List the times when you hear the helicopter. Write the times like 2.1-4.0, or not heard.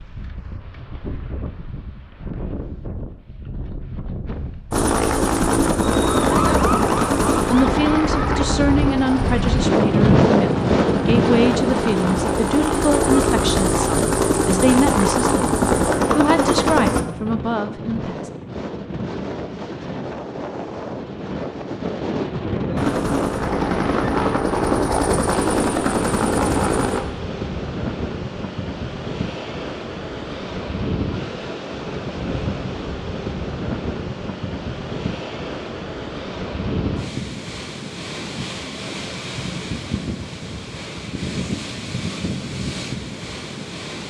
4.7-17.1, 22.8-27.0.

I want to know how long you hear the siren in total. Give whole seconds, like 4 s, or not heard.
3 s.